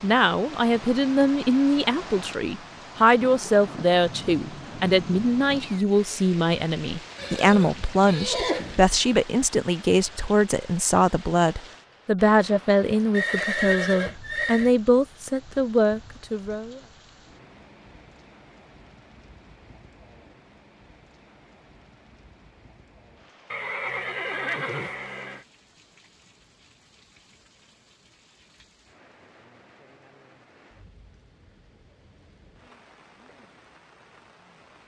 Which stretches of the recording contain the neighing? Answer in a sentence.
You can hear the neighing from 7.2 to 8.9 s, from 13.1 to 14.7 s and from 23.5 to 25.4 s.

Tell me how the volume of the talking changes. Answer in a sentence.
The loudness of the talking stays about the same.